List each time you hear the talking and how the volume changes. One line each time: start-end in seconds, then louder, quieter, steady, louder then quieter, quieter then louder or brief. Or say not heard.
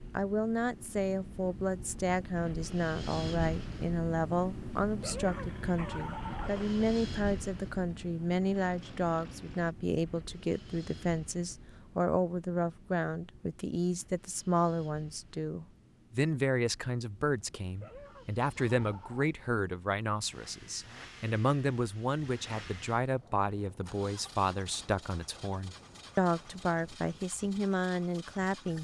0.1-28.8 steady.